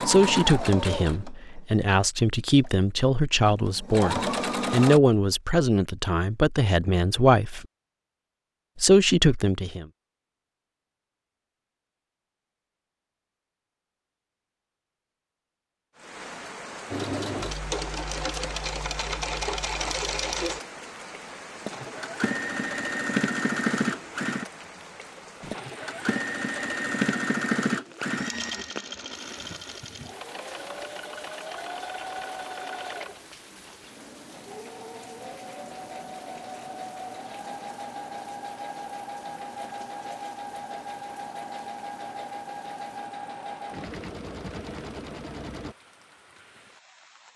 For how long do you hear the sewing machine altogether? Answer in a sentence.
The sewing machine can be heard for 34 seconds in total.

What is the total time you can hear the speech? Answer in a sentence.
The speech can be heard for 9 seconds in total.